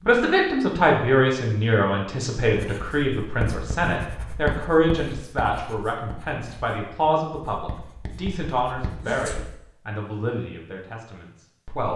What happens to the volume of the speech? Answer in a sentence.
The loudness of the speech goes down.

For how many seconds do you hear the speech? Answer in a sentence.
You can hear the speech for 12 seconds altogether.